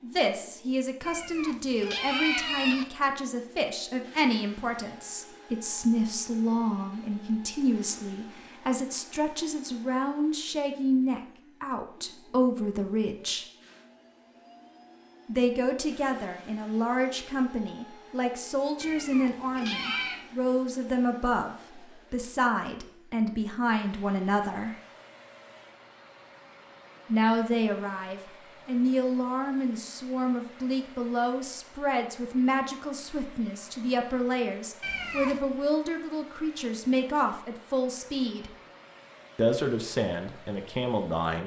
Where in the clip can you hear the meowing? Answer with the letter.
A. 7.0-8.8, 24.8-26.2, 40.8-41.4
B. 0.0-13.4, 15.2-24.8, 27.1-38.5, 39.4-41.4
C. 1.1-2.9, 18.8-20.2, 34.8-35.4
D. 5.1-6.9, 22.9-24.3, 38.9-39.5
C.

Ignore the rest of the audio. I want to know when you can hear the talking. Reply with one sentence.
You can hear the talking from 0.0 to 13.4 s, from 15.2 to 24.8 s, from 27.1 to 38.5 s and from 39.4 to 41.4 s.